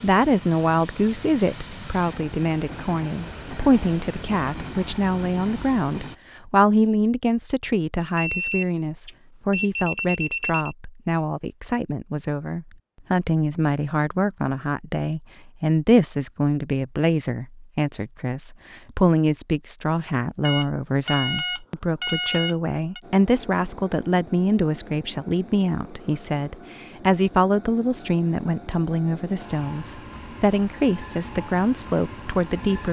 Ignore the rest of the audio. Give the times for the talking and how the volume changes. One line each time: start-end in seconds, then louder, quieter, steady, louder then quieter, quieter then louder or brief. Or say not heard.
0.0-32.8 steady.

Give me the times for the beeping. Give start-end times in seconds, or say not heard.
8.2-10.8, 20.4-23.0.